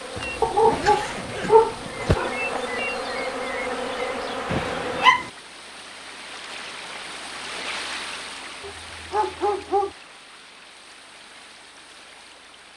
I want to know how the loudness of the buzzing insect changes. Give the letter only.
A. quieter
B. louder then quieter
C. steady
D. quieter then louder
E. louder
E.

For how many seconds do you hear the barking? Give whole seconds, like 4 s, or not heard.
4 s.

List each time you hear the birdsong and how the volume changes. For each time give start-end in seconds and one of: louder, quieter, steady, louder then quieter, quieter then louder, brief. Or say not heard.
not heard.